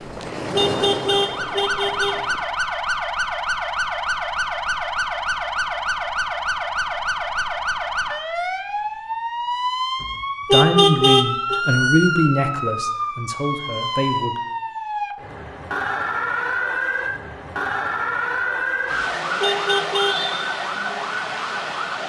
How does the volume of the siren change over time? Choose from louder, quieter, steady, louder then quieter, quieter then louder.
steady.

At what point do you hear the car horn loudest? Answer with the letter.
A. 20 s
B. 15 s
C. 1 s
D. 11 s
D.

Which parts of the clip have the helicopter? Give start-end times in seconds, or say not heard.
0.0-2.5.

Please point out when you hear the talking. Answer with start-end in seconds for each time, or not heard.
10.5-14.4.